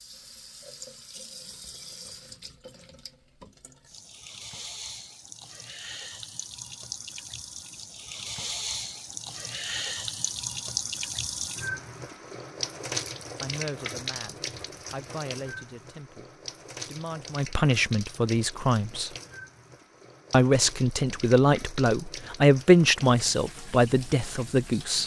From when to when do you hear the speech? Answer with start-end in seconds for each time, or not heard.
13.4-19.1, 20.3-25.0.